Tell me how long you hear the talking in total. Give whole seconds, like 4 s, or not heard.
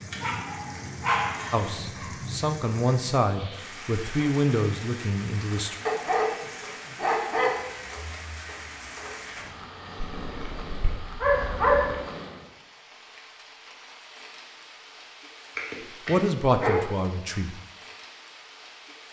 6 s.